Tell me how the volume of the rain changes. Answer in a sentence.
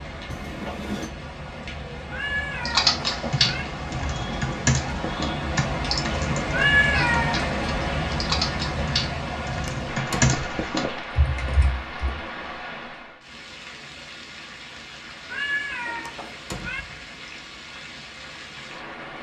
The volume of the rain goes up, then down.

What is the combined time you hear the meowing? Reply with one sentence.
You can hear the meowing for 4 seconds altogether.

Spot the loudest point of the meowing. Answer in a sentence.
The loudest moment of the meowing is at 7 seconds.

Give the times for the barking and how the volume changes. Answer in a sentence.
The barking can't be heard in this clip.